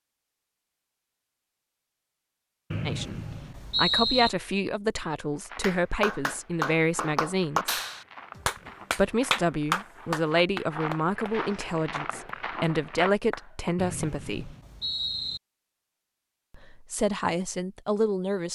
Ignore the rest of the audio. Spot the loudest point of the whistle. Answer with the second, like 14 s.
4 s.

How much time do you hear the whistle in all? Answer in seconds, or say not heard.
3 s.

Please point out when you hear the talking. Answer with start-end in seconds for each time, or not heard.
2.9-7.8, 8.9-14.6, 16.6-18.5.